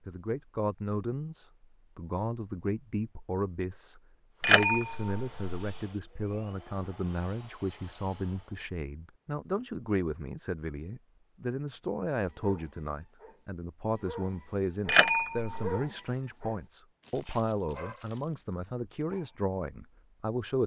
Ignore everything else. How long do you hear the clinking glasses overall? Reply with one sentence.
You can hear the clinking glasses for 2 seconds altogether.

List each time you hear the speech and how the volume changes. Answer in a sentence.
You can hear the speech from 0.1 to 20.6 s, at a steady volume.